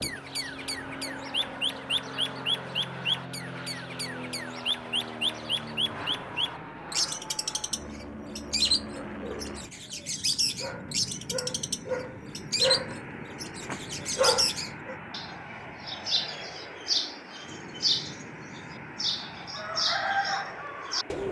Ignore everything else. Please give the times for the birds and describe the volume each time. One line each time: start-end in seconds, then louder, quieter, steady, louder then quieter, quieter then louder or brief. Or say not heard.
0.0-21.2 steady.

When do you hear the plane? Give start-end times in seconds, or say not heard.
0.0-21.2.